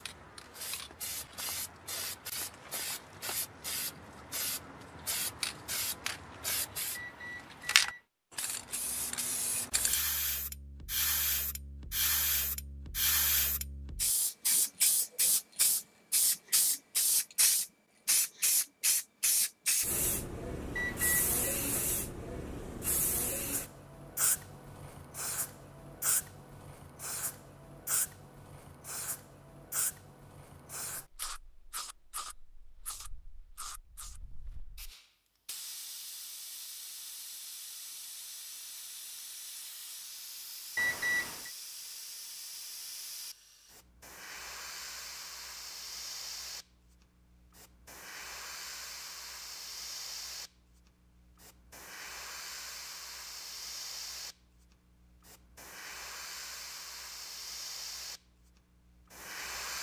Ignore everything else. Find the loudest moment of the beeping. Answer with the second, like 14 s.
41 s.